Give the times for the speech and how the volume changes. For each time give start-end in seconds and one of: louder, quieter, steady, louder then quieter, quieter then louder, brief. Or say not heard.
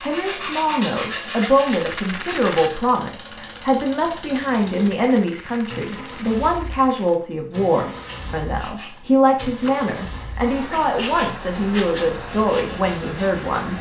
0.0-13.7 steady.